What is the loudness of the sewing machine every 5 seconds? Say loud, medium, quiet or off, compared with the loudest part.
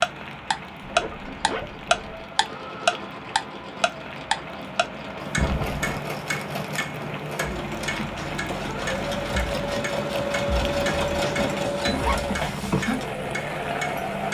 quiet, medium, loud.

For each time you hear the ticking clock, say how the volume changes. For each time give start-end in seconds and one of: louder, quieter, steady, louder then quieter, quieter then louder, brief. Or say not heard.
0.0-14.2 quieter.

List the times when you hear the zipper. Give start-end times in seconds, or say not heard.
0.8-2.2, 5.3-6.0, 11.3-12.2.